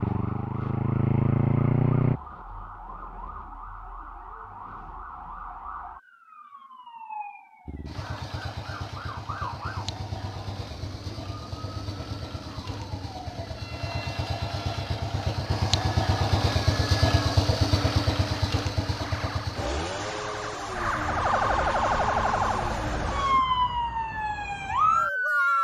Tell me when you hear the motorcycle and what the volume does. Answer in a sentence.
You can hear the motorcycle briefly from 0.0 to 2.2 s; and from 7.7 to 23.4 s, getting louder then quieter.